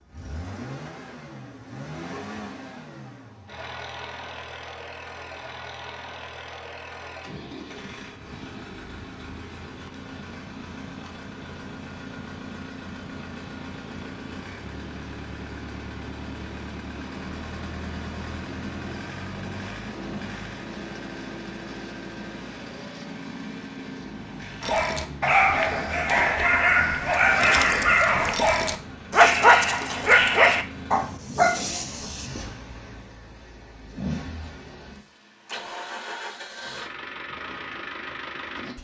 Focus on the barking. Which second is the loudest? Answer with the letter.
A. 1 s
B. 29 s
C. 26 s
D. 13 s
B.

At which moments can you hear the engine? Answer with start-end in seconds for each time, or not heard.
0.0-38.7.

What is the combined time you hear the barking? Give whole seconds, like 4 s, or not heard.
8 s.